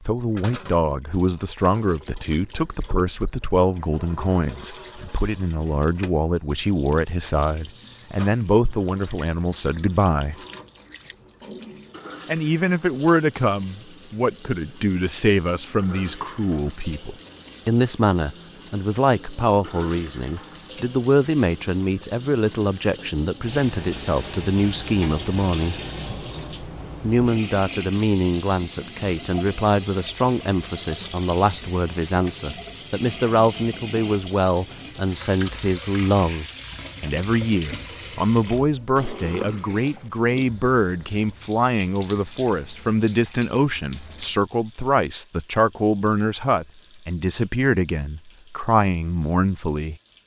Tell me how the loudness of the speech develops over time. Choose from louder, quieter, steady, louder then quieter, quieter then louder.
steady.